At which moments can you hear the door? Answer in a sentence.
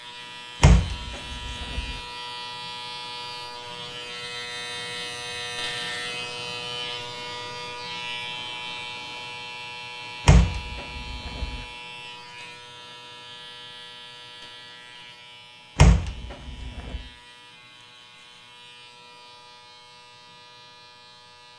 The door can be heard from 0.6 to 2.0 s, from 10.2 to 11.7 s and from 15.8 to 17.0 s.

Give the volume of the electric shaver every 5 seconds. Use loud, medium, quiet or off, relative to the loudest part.
loud, loud, medium, quiet, quiet.